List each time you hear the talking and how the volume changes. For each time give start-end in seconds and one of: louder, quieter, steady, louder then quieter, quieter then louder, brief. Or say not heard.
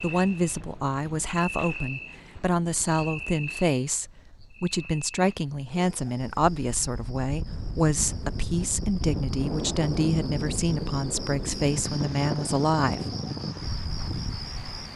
0.0-13.2 steady.